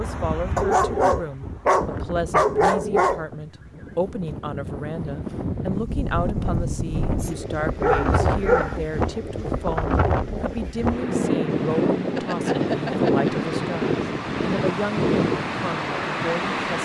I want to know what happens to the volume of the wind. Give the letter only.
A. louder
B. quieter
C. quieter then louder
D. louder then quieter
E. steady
A.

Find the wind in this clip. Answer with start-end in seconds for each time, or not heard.
0.0-16.7.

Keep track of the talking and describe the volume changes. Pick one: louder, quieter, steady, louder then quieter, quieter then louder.
steady.